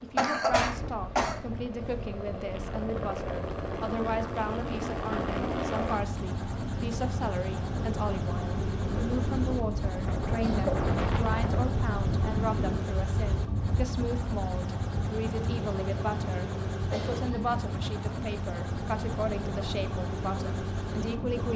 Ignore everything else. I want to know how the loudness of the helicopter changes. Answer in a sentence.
The volume of the helicopter stays about the same.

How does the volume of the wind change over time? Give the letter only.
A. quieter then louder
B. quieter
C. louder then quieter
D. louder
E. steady
C.